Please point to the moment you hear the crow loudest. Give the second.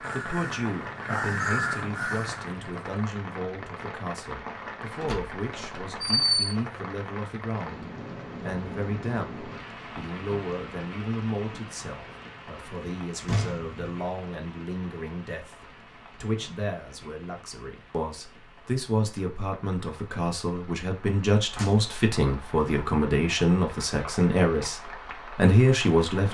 2 s.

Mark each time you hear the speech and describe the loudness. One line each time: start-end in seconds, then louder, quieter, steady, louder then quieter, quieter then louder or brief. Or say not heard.
0.0-26.2 louder.